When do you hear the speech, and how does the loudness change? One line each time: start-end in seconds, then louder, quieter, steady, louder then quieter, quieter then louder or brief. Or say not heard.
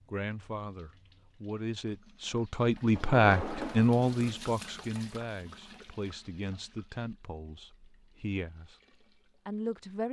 0.1-8.8 louder then quieter
9.4-10.0 brief.